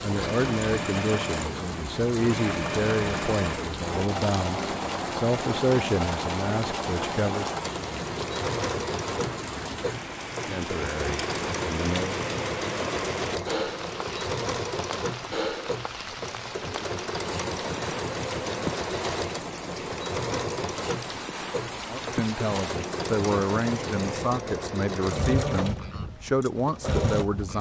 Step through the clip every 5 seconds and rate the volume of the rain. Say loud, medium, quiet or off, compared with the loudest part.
loud, loud, loud, loud, loud, medium.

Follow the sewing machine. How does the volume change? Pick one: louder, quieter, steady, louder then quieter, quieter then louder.
steady.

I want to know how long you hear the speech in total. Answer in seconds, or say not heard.
15 s.